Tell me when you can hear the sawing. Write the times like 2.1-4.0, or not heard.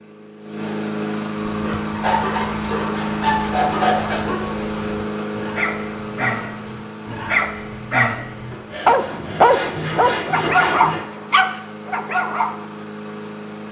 1.9-4.2, 8.5-11.1.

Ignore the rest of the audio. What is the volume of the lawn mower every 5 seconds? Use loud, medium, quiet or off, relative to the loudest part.
loud, medium, medium.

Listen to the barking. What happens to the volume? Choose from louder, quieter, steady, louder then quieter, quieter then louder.
louder.